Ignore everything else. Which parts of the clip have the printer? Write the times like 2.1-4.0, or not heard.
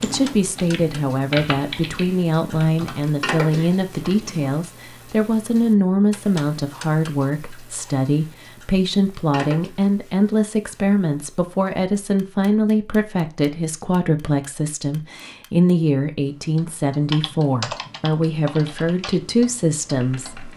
not heard.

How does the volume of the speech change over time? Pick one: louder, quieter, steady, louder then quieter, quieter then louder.
steady.